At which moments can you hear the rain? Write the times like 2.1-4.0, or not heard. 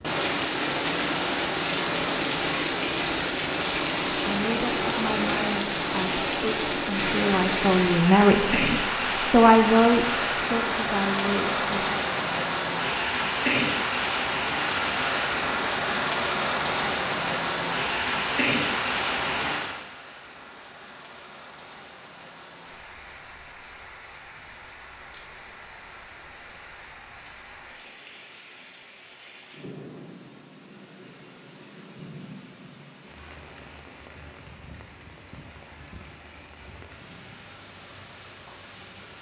0.0-39.1.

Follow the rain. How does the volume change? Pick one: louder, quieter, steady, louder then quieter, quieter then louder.
quieter.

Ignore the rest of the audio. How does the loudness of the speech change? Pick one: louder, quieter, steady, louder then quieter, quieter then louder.
louder then quieter.